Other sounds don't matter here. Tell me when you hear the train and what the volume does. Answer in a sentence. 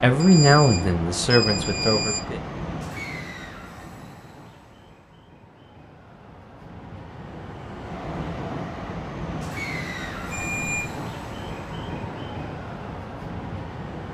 You can hear the train from 0.0 to 14.0 s, getting quieter then louder.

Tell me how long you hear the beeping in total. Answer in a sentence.
The beeping can be heard for 3 seconds in total.